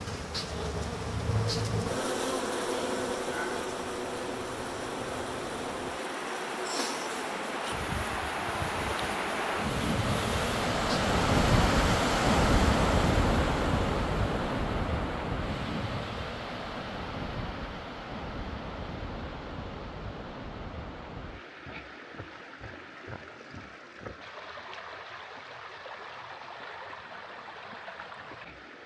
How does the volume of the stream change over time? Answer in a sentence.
The loudness of the stream goes up, then down.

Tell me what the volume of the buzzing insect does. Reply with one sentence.
The volume of the buzzing insect goes down.